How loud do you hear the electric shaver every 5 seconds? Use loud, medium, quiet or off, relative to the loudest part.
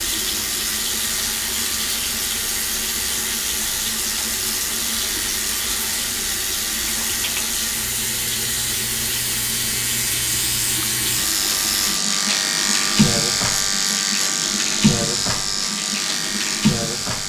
medium, medium, loud, loud.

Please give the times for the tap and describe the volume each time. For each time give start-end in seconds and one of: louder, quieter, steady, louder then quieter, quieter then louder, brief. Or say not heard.
0.0-17.2 steady.